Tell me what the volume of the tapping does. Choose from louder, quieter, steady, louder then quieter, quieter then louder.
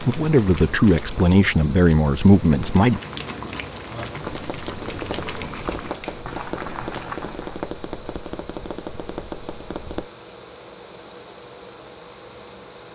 steady.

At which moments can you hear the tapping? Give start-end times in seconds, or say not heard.
4.2-10.1.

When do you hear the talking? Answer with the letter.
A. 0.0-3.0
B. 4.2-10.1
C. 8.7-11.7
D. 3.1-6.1
A.